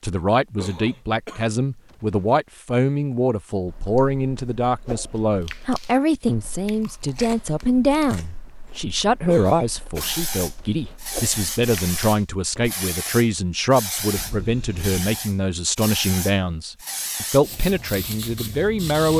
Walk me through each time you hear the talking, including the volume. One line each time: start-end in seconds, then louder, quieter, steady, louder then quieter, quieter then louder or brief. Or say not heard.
0.0-19.1 steady.